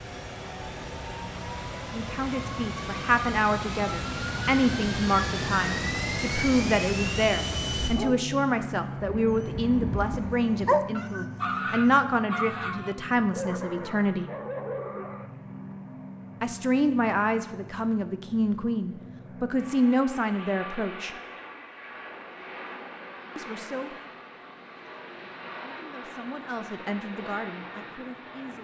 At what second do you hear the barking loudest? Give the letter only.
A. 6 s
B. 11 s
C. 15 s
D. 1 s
B.